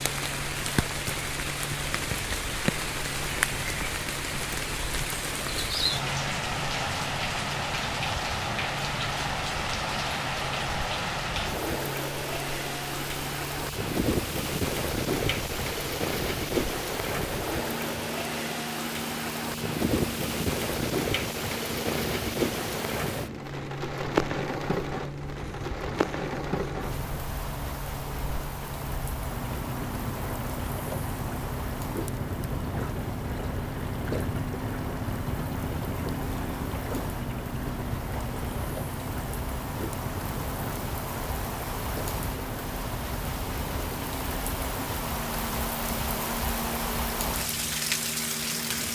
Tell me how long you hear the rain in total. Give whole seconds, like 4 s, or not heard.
49 s.